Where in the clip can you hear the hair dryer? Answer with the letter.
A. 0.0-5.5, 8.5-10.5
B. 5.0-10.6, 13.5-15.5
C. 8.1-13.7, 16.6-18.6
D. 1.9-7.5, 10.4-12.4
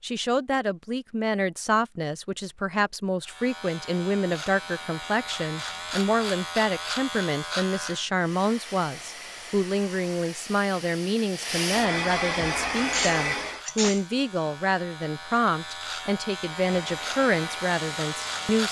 C.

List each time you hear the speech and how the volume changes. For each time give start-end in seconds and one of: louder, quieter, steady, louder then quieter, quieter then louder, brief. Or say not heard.
0.0-18.6 steady.